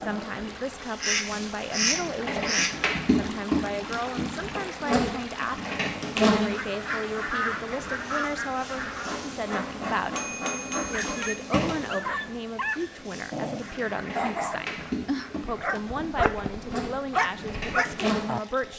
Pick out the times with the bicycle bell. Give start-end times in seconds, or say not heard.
10.0-11.4.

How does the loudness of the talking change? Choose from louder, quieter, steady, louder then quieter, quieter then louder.
steady.